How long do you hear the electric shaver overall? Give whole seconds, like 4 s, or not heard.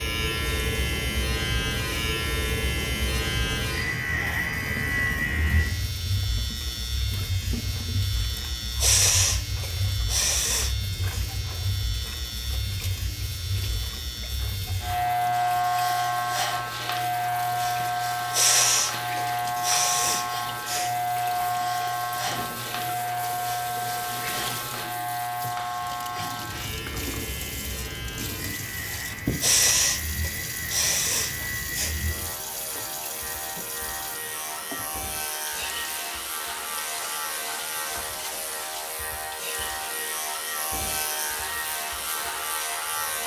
43 s.